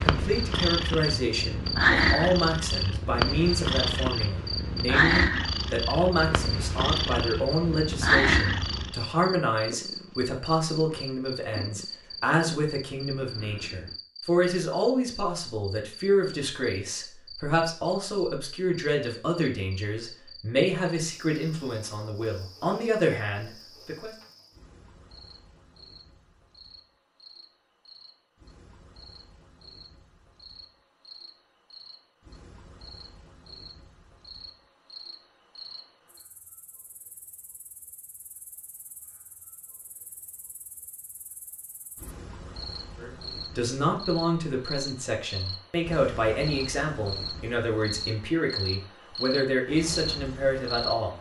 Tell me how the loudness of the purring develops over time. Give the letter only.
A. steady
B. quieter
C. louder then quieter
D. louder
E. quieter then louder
B.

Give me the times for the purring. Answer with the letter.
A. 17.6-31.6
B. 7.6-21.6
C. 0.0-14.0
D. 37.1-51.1
C.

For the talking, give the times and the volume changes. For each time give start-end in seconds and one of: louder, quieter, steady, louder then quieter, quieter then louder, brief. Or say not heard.
0.0-24.1 steady
43.0-51.1 steady.